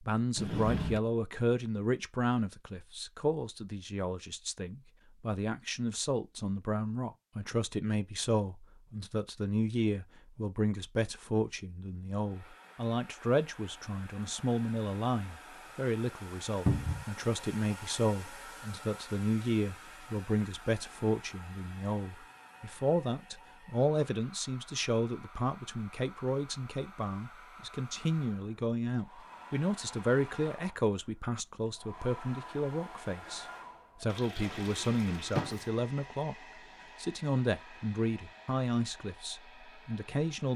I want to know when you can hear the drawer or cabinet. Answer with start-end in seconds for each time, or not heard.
0.3-1.0, 16.6-17.1, 34.4-35.6.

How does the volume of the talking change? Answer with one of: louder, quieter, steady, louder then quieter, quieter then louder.
steady.